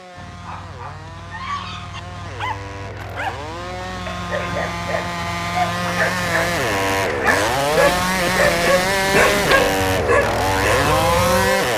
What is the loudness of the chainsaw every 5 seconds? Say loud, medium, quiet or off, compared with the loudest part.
quiet, loud, loud.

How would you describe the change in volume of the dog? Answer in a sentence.
The volume of the dog goes up.